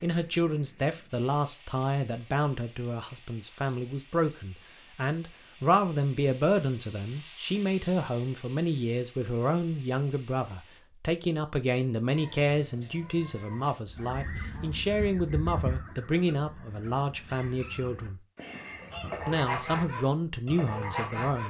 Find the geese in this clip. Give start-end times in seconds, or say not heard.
13.8-21.4.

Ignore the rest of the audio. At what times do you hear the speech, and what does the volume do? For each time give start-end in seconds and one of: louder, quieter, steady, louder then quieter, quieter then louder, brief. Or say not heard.
0.0-18.2 steady
19.2-21.4 brief.